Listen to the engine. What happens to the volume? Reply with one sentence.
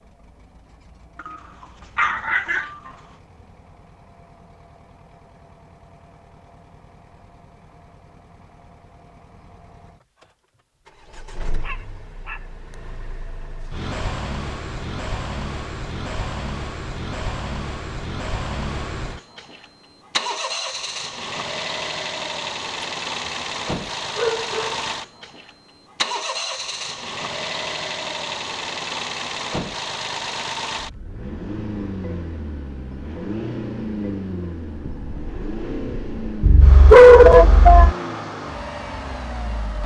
The volume of the engine goes up.